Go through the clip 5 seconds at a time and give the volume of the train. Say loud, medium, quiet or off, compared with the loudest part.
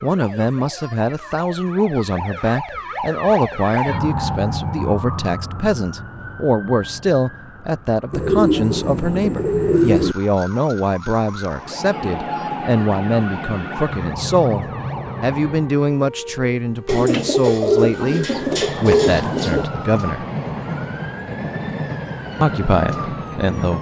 off, off, loud, loud, loud.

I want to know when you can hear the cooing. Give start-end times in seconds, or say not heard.
8.1-10.2, 16.9-19.7.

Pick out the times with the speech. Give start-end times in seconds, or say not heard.
0.0-20.2, 22.4-23.7.